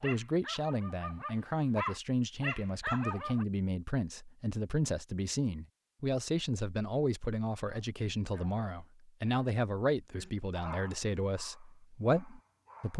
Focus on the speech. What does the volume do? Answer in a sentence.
The volume of the speech stays about the same.